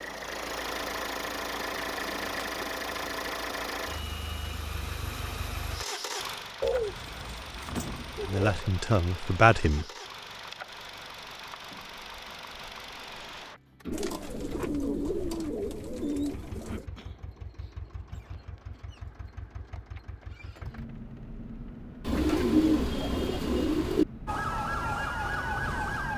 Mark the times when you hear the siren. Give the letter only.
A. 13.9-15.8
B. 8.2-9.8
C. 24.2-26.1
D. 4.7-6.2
C.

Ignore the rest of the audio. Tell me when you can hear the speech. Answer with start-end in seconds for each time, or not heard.
8.2-9.8.